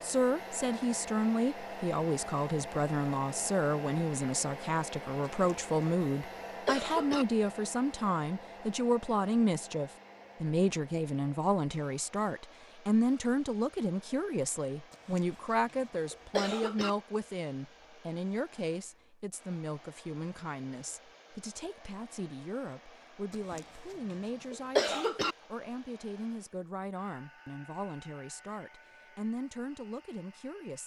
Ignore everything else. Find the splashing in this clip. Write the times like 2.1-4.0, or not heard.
not heard.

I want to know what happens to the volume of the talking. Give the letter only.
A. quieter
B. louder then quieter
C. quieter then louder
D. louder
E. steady
A.